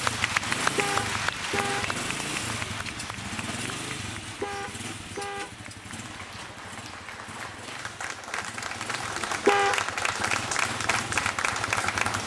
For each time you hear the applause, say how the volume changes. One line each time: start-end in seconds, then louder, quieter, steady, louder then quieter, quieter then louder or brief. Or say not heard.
0.0-12.2 quieter then louder.